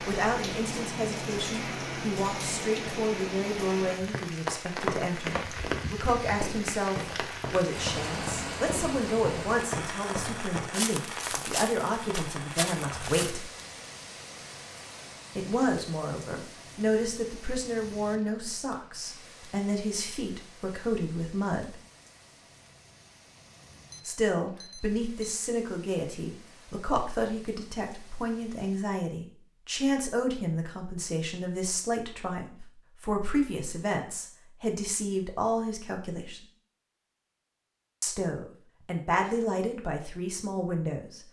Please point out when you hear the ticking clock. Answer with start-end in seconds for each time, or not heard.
not heard.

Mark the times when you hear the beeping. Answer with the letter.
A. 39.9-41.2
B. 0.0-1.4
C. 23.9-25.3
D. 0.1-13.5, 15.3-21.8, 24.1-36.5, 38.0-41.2
C.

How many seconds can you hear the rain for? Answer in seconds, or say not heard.
29 s.